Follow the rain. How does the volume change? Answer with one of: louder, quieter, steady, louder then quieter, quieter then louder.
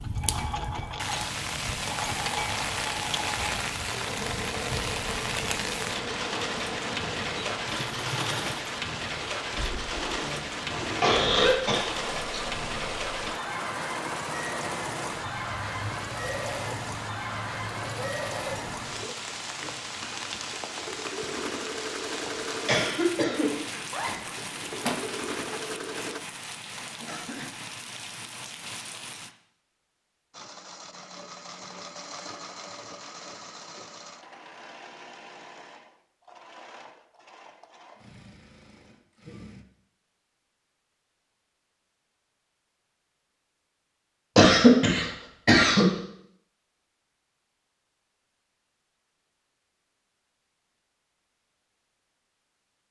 quieter.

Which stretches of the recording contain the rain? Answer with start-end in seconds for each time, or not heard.
0.0-29.4.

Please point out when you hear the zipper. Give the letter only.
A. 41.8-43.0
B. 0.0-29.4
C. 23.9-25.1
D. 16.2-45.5
C.